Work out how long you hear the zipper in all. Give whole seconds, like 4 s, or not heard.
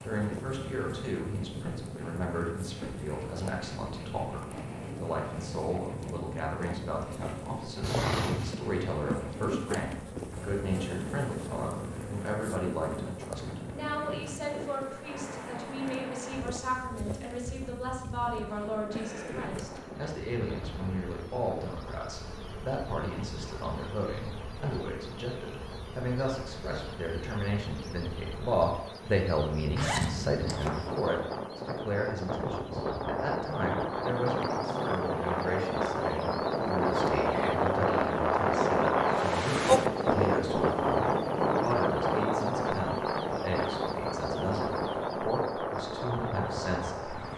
2 s.